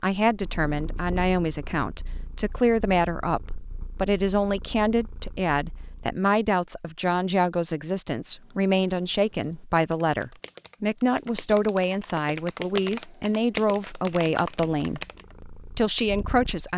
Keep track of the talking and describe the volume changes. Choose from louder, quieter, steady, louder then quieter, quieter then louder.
steady.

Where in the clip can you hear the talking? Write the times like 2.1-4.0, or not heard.
0.0-16.7.